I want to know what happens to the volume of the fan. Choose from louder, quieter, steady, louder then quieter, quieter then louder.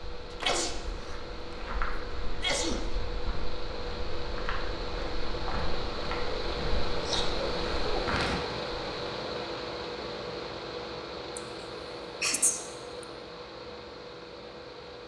louder then quieter.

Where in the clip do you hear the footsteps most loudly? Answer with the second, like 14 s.
8 s.